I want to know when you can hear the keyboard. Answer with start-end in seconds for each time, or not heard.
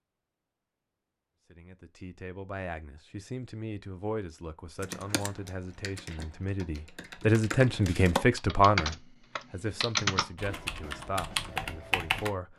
4.8-12.3.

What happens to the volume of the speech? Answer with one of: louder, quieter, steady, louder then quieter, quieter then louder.
louder then quieter.